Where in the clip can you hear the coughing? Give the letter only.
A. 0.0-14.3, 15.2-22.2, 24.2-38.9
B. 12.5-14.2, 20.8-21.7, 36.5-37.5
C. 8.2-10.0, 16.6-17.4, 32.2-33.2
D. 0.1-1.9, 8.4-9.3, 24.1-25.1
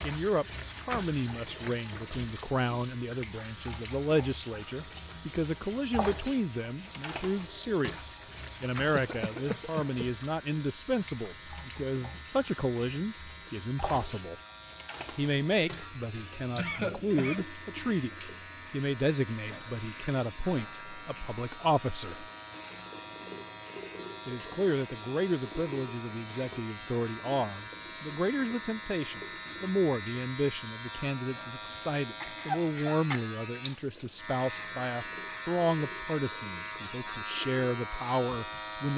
C.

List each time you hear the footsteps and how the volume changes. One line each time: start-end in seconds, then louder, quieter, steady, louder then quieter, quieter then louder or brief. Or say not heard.
not heard.